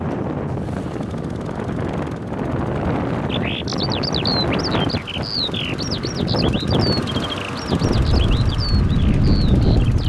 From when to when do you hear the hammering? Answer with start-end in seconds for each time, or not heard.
not heard.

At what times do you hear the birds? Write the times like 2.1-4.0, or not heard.
3.3-10.0.